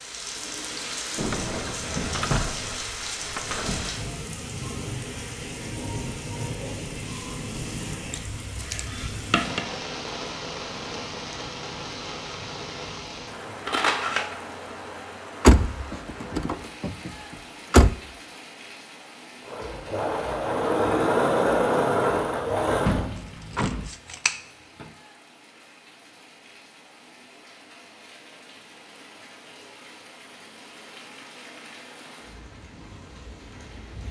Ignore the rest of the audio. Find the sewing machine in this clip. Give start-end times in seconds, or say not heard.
19.4-23.1.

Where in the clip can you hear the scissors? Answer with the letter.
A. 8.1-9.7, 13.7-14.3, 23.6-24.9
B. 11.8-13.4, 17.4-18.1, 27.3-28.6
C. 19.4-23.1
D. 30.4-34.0
A.